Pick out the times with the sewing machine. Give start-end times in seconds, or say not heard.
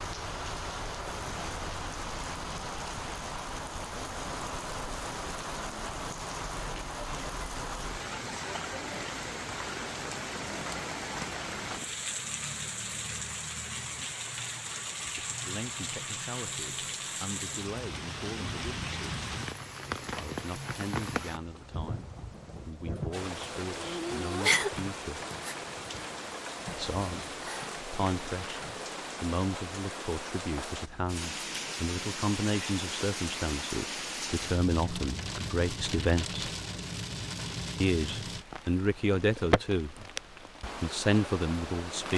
not heard.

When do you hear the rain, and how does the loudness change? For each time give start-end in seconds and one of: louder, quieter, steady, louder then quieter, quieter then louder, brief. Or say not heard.
0.0-42.1 steady.